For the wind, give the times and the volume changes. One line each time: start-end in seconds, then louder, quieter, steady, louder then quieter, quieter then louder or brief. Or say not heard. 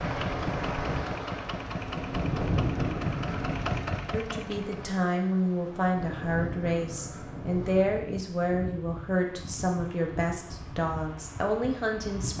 0.0-12.3 quieter.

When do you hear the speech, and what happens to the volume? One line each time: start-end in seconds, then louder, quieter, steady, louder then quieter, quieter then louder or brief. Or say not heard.
4.1-12.3 steady.